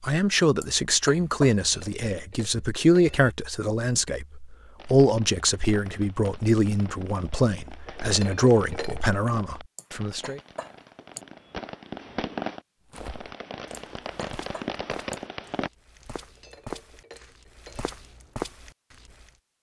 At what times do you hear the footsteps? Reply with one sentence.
The footsteps can be heard from 12.9 to 19.3 s.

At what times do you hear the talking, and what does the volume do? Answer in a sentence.
The talking can be heard from 0.0 to 10.4 s, at a steady volume.